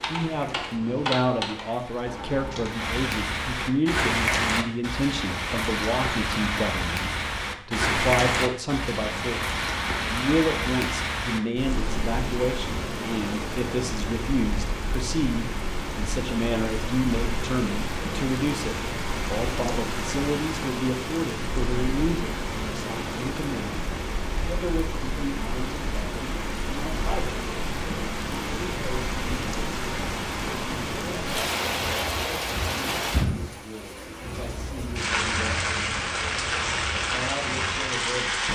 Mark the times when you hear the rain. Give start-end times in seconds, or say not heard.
0.1-38.4.